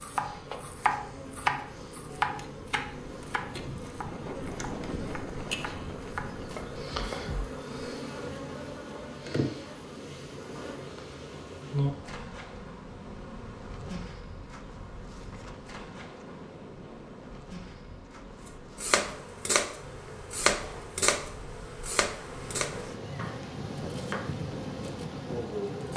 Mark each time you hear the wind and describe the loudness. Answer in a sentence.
You can hear the wind from 0.2 to 25.9 s, getting quieter then louder.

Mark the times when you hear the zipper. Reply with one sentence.
You can't hear the zipper here.